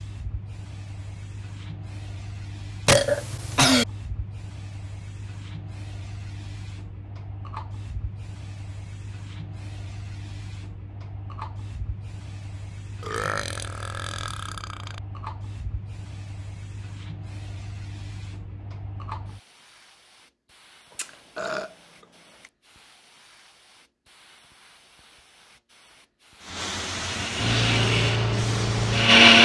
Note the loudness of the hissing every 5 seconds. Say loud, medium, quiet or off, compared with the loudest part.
quiet, quiet, quiet, quiet, quiet, loud.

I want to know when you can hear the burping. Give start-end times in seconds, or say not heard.
2.9-3.9, 13.0-15.0, 20.9-22.5.